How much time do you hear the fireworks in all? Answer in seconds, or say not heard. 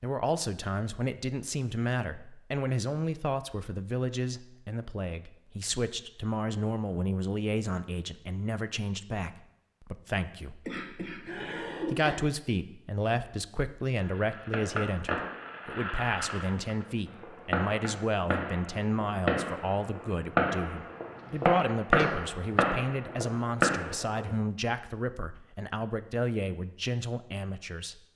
10 s.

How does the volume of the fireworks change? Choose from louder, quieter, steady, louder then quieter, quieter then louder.
louder.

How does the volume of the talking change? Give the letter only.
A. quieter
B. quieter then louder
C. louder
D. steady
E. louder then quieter
D.